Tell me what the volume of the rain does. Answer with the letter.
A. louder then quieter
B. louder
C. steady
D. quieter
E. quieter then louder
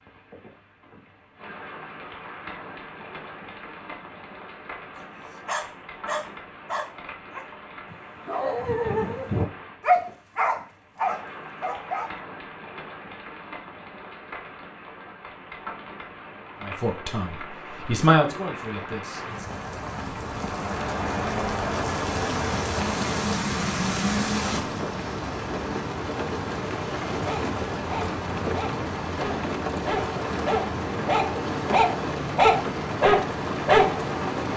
B.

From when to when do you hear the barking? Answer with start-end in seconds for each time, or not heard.
5.0-12.2, 27.2-34.0.